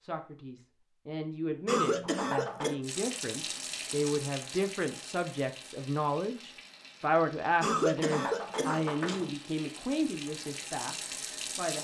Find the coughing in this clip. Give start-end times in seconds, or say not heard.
1.6-2.8, 7.6-9.3.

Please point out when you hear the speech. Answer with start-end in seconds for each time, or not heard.
0.0-11.8.